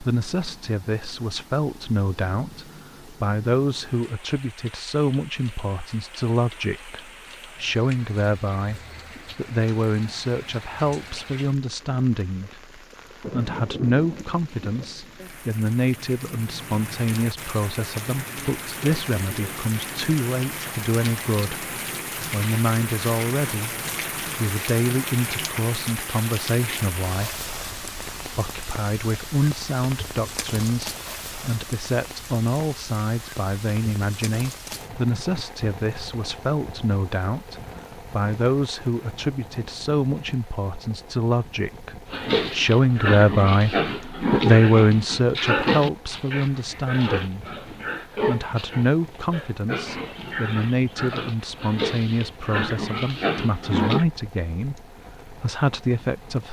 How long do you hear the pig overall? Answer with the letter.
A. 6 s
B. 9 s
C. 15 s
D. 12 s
D.